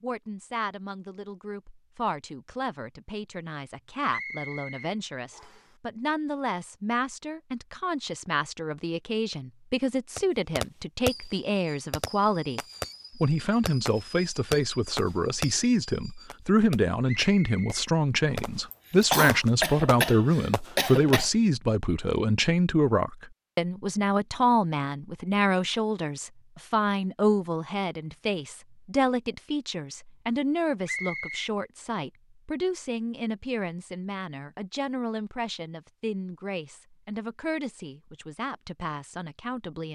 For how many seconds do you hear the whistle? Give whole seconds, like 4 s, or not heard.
4 s.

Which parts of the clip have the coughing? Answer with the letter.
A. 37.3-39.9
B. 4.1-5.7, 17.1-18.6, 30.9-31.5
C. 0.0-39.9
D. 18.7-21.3
D.